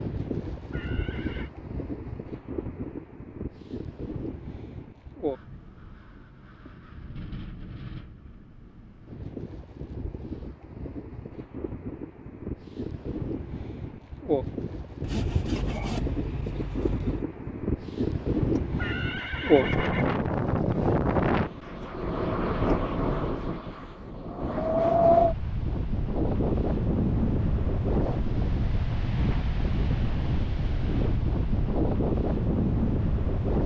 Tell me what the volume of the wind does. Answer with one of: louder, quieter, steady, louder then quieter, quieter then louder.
louder.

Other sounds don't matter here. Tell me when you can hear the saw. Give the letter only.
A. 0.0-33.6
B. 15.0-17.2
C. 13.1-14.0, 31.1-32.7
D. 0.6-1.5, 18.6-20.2
B.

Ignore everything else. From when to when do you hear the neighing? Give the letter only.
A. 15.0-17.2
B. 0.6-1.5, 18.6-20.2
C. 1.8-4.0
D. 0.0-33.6
B.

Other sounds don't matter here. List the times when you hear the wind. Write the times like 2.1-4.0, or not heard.
0.0-33.6.